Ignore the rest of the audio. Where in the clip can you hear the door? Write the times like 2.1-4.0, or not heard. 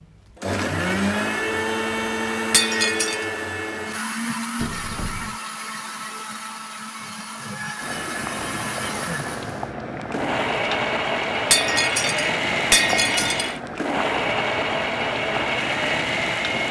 4.5-5.4.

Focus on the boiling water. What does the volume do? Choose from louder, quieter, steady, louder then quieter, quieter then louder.
steady.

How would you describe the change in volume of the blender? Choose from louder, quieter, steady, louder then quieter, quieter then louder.
quieter then louder.